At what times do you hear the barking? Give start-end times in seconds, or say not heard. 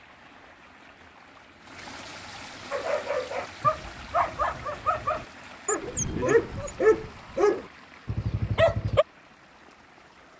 2.7-9.1.